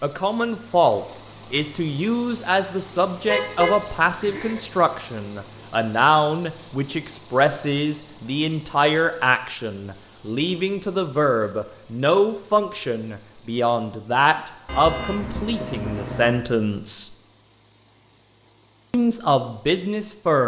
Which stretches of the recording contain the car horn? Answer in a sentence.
The car horn can be heard from 3.2 to 4.6 s and from 14.7 to 16.4 s.